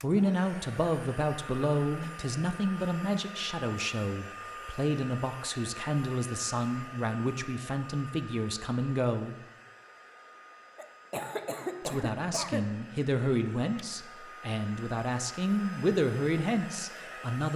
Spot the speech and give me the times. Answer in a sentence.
The speech can be heard from 0.0 to 9.4 s and from 11.8 to 17.5 s.